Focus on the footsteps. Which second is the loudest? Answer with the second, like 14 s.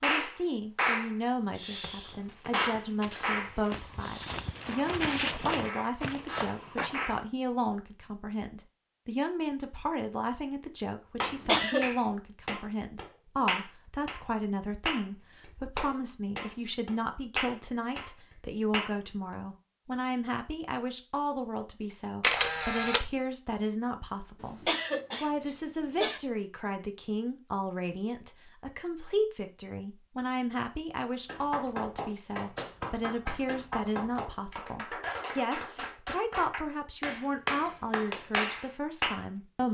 5 s.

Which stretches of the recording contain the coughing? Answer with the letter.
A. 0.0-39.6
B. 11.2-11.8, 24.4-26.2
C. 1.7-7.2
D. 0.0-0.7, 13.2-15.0
B.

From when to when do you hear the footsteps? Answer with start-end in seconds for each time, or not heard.
1.7-7.2.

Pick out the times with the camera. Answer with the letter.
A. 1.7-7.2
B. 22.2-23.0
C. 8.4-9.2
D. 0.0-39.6
B.